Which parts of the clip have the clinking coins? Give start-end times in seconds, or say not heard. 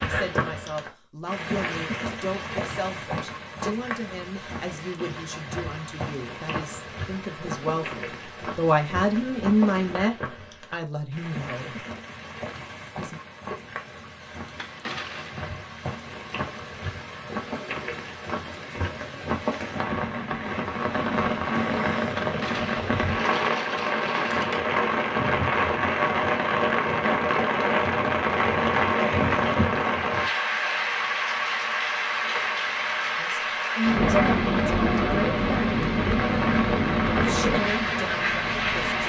14.6-15.5, 22.1-24.6.